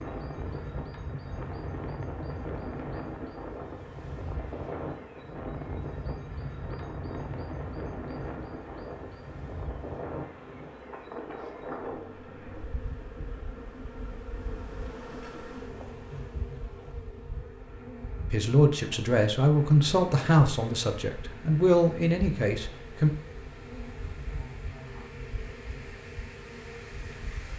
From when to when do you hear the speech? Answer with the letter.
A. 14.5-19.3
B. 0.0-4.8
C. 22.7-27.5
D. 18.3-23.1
D.